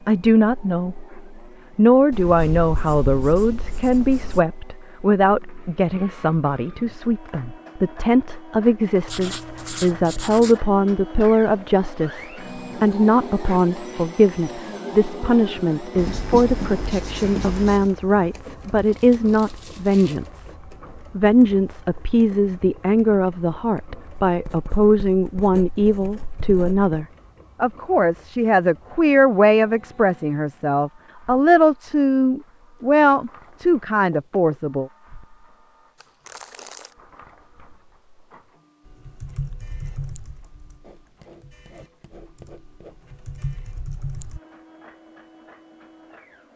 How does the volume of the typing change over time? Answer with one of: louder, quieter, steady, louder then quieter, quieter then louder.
quieter then louder.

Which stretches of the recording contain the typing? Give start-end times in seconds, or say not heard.
38.9-44.4.